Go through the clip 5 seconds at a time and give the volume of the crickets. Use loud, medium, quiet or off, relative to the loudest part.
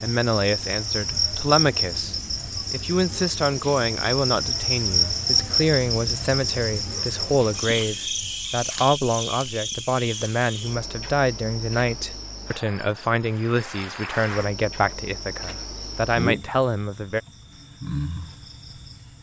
loud, loud, medium, medium.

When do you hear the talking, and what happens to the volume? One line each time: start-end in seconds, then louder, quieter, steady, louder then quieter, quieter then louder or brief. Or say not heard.
0.0-17.2 steady.